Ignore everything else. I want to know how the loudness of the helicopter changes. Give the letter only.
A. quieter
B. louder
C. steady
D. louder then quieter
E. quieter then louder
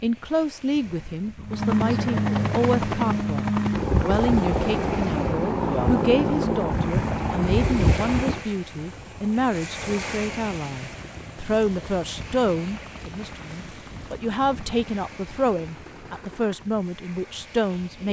A.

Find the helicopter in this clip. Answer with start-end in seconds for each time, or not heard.
1.4-16.8.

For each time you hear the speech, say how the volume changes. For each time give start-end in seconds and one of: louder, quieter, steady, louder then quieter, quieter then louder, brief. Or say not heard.
0.0-18.0 steady.